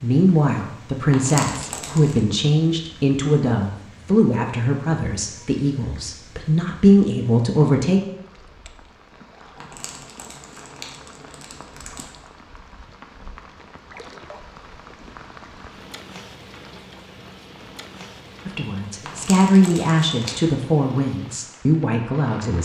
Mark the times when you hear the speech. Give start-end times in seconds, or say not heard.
0.0-8.0, 18.4-22.5.